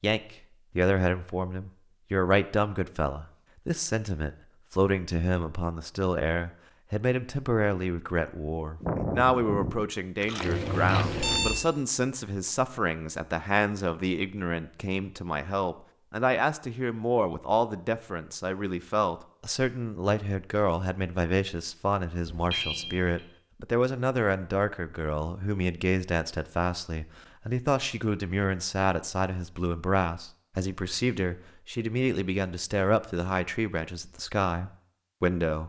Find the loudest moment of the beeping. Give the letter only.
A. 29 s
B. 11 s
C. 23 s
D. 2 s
B.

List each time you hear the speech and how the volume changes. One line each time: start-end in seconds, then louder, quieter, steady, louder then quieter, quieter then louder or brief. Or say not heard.
0.0-35.6 steady.